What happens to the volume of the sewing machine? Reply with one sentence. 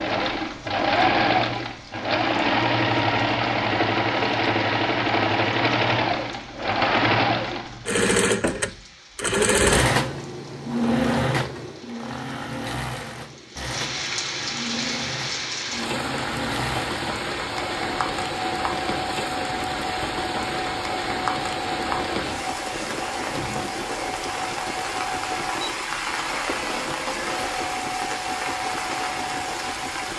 The loudness of the sewing machine goes down.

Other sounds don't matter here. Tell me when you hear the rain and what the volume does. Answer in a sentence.
The rain can be heard from 0.0 to 30.1 s, getting louder.